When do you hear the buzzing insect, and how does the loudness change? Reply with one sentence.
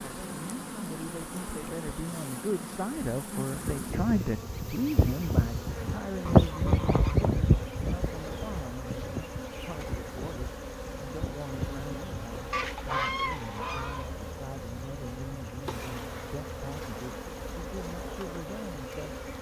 The buzzing insect can be heard from 0.0 to 19.3 s, at a steady volume.